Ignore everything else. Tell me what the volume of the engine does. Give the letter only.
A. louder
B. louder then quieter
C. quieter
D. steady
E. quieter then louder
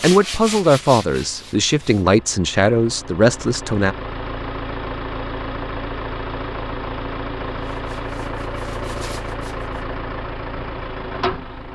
A.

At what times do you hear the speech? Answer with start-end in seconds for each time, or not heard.
0.0-4.0.